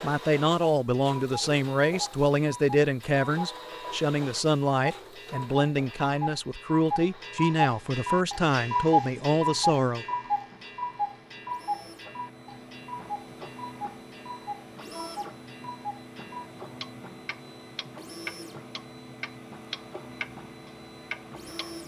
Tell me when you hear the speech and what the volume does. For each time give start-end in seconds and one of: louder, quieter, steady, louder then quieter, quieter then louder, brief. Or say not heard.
0.0-10.1 steady.